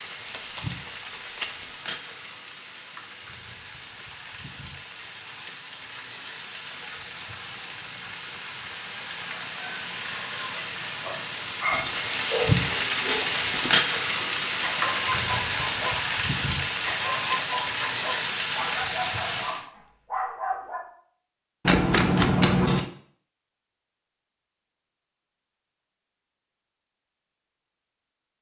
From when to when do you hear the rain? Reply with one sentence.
You can hear the rain from 0.0 to 19.6 s.